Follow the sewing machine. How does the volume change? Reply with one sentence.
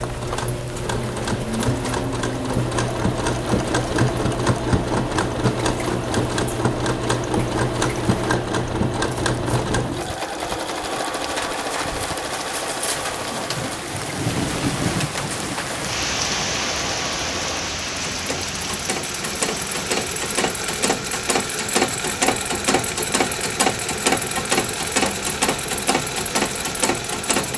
The loudness of the sewing machine goes down, then up.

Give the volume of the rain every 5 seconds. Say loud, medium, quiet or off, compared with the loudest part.
medium, medium, loud, loud, medium, medium.